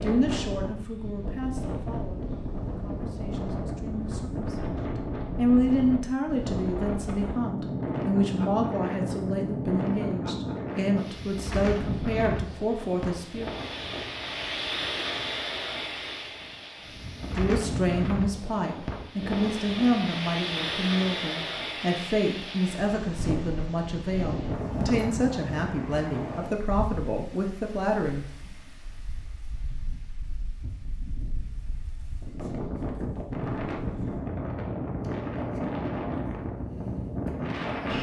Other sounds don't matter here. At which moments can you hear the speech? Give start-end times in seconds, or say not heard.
0.0-13.5, 17.3-28.3.